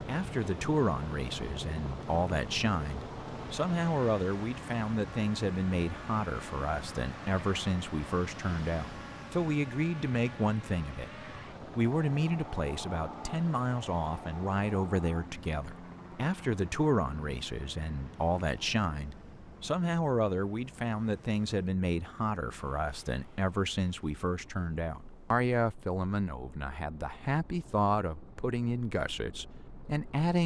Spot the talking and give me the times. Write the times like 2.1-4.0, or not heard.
0.0-30.4.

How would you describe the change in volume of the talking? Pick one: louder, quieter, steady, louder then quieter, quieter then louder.
steady.